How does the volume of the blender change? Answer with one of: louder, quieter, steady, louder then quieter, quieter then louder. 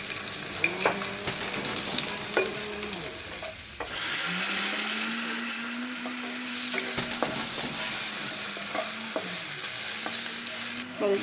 louder then quieter.